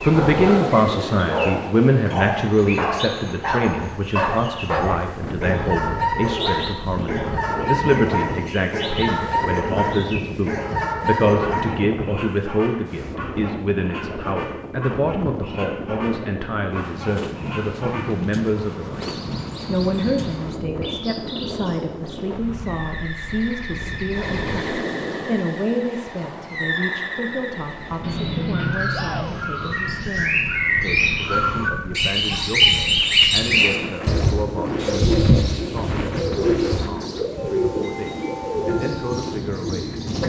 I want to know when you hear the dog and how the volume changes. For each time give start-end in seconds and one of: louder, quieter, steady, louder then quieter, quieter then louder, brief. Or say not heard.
0.1-12.1 steady.